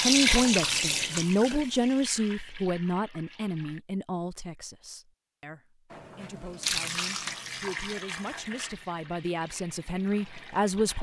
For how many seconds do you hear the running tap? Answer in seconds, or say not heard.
9 s.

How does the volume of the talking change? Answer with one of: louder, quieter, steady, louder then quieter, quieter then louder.
quieter then louder.